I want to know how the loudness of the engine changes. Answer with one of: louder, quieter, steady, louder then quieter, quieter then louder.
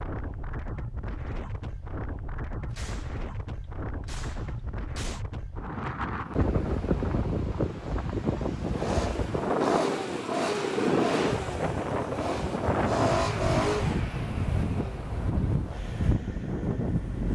louder then quieter.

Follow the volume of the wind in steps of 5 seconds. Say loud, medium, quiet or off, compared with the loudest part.
medium, loud, loud, loud.